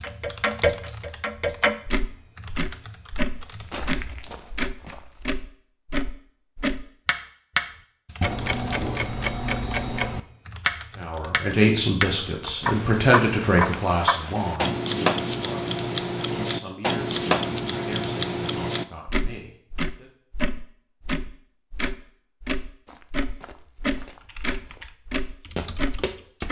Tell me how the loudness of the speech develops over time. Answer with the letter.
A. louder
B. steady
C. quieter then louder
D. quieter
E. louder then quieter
D.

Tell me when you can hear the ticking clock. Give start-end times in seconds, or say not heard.
0.0-26.4.